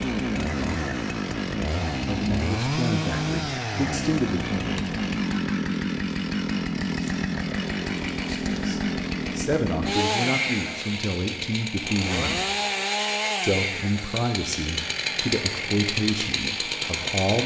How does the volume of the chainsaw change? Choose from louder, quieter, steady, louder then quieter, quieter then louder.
steady.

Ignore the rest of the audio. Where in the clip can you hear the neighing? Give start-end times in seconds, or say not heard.
not heard.